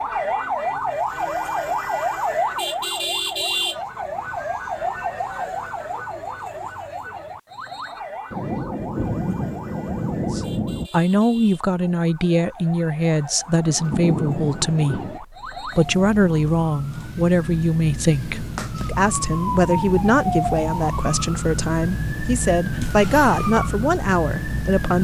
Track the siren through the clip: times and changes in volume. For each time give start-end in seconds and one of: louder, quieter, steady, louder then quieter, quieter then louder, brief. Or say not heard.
0.0-24.9 quieter then louder.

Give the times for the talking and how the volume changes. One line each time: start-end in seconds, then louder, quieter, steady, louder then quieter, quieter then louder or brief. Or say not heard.
10.3-24.9 steady.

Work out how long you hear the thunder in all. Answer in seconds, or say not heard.
4 s.